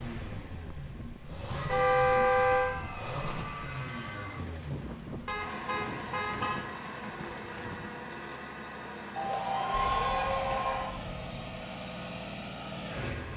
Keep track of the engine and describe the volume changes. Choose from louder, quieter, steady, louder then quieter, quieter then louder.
steady.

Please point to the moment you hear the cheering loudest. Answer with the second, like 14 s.
10 s.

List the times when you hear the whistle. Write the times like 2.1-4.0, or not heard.
not heard.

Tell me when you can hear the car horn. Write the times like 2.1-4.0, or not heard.
1.6-2.8, 5.2-6.7, 9.7-11.6.